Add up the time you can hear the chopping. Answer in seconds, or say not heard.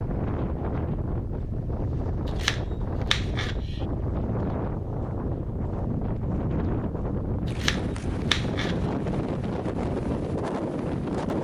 3 s.